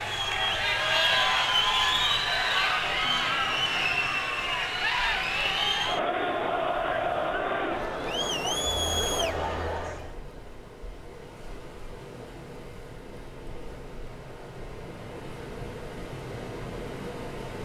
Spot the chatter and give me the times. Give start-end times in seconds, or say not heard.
0.0-10.2.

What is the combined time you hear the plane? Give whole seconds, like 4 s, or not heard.
not heard.